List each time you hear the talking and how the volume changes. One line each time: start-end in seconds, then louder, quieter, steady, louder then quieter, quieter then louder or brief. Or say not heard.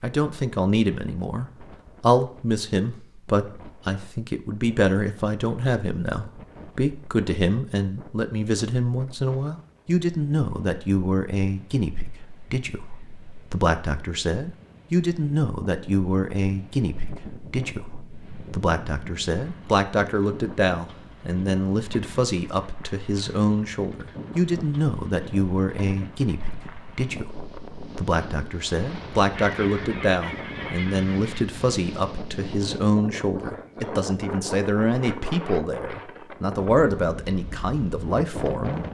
0.0-38.9 steady.